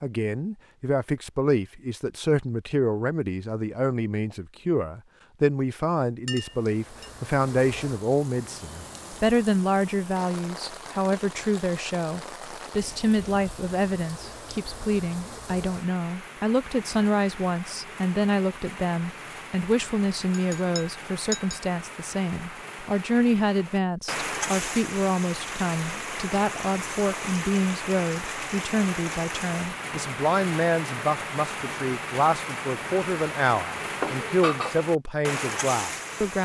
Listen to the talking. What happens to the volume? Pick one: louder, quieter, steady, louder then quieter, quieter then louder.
steady.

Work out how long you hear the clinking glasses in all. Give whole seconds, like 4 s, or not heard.
3 s.